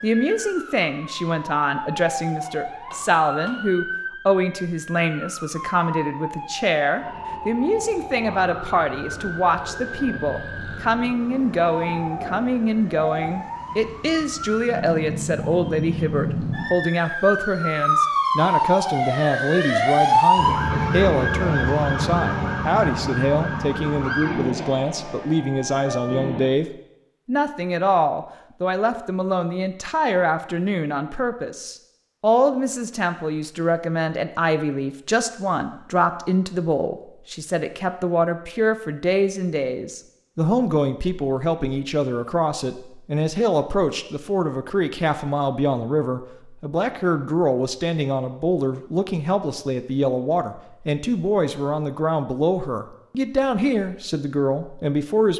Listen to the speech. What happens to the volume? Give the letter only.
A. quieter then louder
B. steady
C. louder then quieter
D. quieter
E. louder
B.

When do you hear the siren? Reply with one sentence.
The siren can be heard from 0.0 to 26.5 s.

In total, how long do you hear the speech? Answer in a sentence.
The speech can be heard for 55 seconds in total.